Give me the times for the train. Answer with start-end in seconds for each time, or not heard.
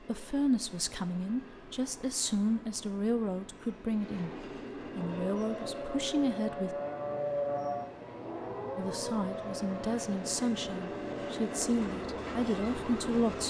0.0-13.4.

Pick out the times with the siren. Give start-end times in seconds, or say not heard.
5.0-13.4.